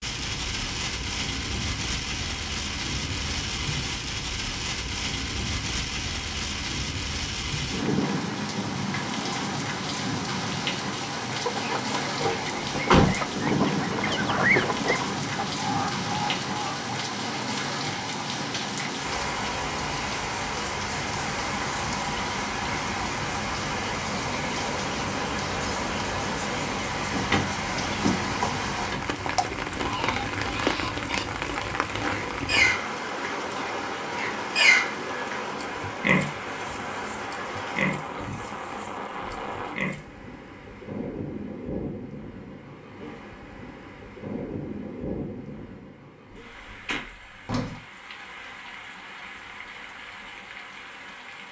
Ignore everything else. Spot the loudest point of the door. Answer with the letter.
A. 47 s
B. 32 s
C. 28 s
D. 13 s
D.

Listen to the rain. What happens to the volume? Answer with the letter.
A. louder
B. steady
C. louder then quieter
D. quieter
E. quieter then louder
D.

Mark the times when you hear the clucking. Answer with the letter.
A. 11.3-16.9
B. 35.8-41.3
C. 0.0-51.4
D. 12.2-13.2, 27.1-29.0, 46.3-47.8
A.